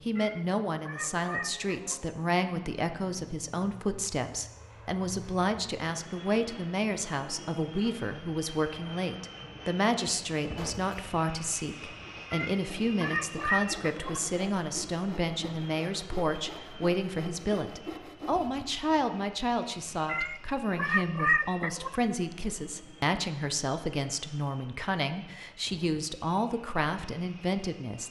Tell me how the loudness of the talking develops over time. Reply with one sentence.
The loudness of the talking stays about the same.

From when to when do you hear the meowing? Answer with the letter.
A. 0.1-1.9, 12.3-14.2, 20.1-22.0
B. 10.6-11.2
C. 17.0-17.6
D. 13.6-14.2
A.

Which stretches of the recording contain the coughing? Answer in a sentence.
The coughing can be heard from 10.6 to 11.2 s.